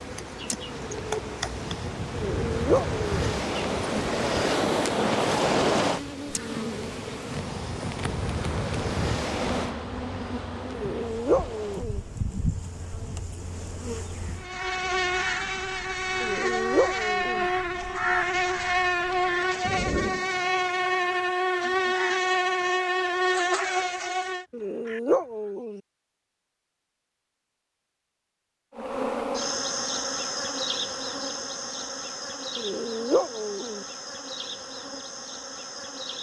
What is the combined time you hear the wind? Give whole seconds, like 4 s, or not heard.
21 s.